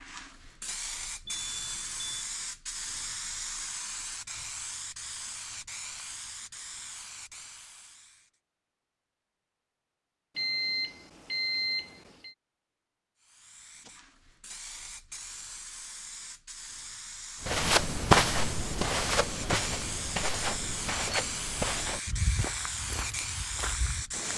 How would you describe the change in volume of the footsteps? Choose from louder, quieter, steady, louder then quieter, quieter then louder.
quieter.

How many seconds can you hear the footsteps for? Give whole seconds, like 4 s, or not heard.
7 s.